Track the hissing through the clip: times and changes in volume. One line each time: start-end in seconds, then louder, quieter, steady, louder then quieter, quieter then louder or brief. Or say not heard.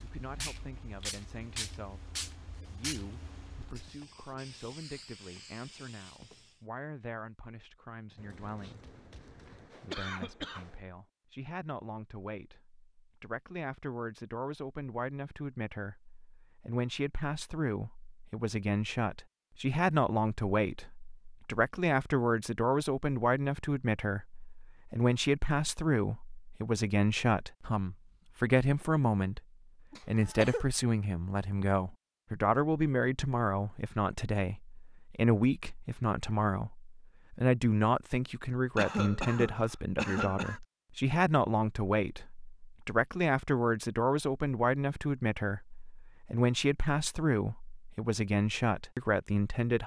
0.0-6.6 quieter.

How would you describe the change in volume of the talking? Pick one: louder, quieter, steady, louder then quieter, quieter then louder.
louder.